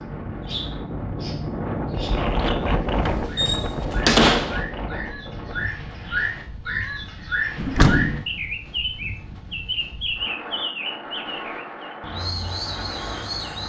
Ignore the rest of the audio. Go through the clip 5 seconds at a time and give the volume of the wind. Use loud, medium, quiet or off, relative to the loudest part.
loud, quiet, medium.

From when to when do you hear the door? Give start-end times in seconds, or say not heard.
3.0-4.6, 7.5-8.2.